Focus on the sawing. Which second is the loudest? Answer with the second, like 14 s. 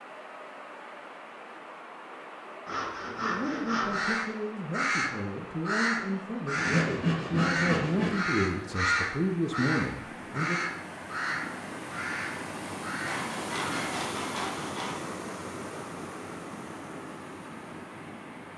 7 s.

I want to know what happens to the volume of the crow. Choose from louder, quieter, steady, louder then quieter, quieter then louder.
quieter.